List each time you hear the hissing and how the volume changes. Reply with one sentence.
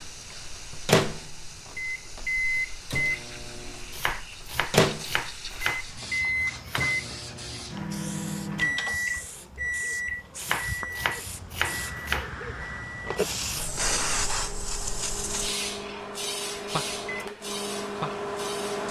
You can hear the hissing from 0.0 to 18.8 s, getting louder.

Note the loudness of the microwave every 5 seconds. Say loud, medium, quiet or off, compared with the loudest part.
loud, loud, medium, medium.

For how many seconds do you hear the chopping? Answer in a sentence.
You can hear the chopping for 5 seconds altogether.